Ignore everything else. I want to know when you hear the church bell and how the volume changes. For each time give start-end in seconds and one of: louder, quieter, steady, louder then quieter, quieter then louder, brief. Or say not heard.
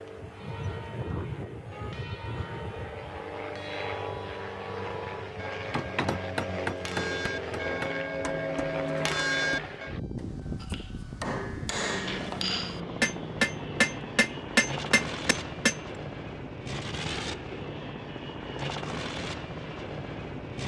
0.3-9.9 louder.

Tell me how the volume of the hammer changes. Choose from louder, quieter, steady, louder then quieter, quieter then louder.
quieter then louder.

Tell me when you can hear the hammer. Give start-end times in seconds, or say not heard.
5.7-15.8.